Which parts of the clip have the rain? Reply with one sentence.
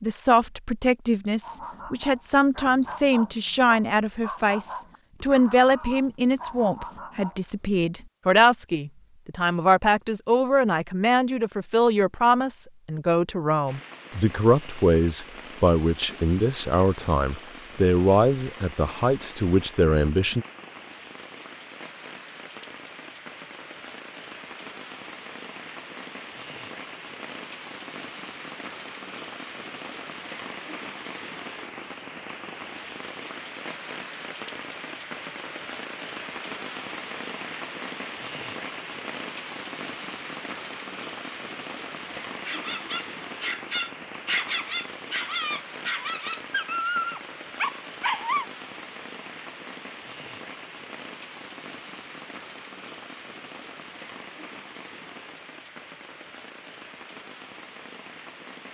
You can hear the rain from 13.7 to 58.6 s.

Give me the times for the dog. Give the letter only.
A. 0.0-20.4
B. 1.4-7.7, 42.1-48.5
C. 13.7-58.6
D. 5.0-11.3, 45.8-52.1
B.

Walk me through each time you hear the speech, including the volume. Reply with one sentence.
You can hear the speech from 0.0 to 20.4 s, at a steady volume.